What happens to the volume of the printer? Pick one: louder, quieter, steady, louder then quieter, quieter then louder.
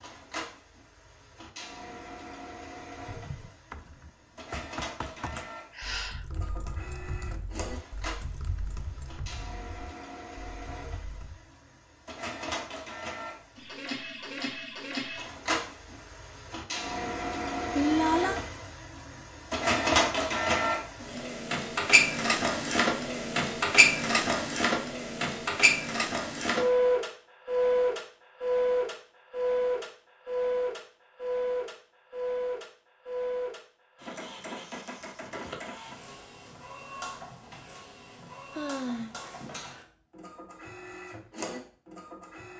louder then quieter.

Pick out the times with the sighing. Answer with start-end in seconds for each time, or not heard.
5.3-6.2, 17.8-18.4, 38.5-39.1.